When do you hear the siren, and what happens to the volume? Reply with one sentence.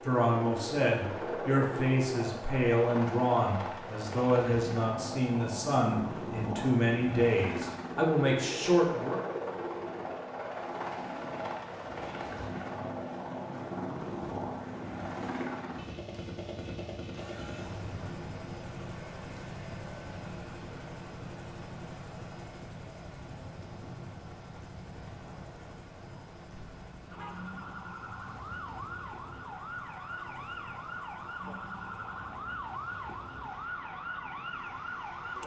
You can hear the siren from 27.1 to 35.4 s, at a steady volume.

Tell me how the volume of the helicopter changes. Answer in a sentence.
The loudness of the helicopter goes down.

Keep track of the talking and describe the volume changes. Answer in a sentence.
The volume of the talking stays about the same.